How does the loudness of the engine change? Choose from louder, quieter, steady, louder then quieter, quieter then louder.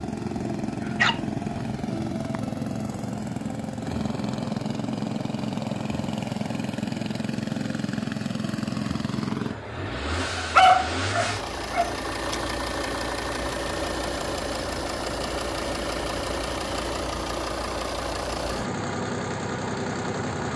steady.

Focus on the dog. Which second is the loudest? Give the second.
11 s.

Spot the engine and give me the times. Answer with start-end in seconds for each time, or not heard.
0.0-20.5.